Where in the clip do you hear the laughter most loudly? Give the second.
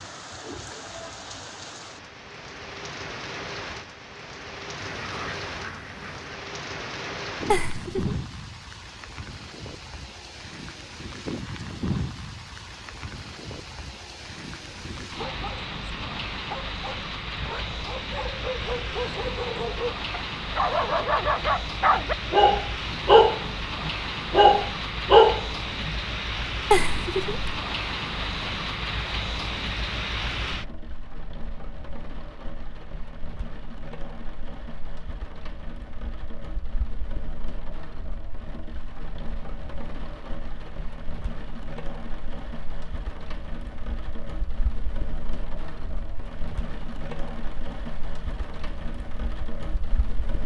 27 s.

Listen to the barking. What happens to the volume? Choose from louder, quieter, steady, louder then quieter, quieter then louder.
louder.